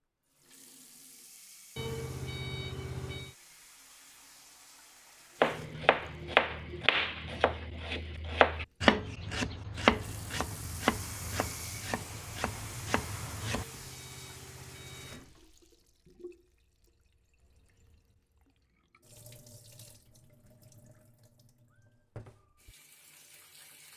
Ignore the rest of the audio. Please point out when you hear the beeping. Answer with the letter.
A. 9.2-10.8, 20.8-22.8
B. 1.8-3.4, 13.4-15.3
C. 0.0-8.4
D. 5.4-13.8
B.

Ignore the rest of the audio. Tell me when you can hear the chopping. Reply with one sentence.
You can hear the chopping from 5.4 to 13.8 s.